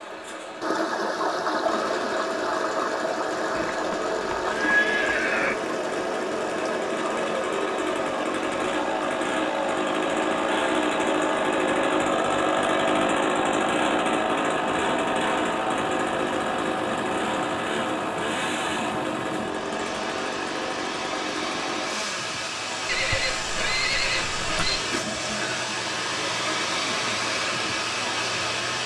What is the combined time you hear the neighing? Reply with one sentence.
The neighing can be heard for 4 seconds in total.